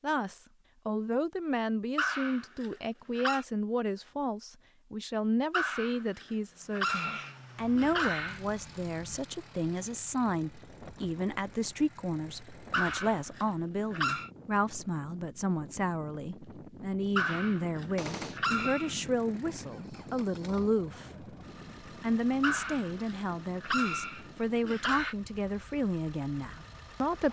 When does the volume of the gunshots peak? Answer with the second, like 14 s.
18 s.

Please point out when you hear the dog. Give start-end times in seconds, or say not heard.
1.9-3.5, 5.5-8.4, 12.7-14.3, 17.1-18.9, 22.4-25.1.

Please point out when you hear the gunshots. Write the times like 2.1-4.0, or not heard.
6.8-7.3, 17.9-18.4.